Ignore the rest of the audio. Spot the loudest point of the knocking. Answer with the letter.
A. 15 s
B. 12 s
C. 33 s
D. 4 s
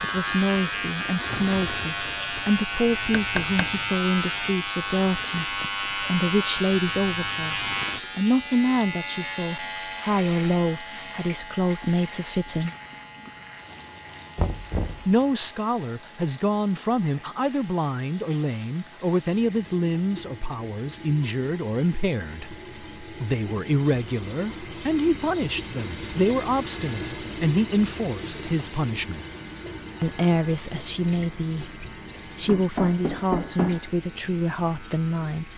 C.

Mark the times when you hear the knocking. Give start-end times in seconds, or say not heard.
3.1-3.8, 14.3-15.2, 32.5-33.8.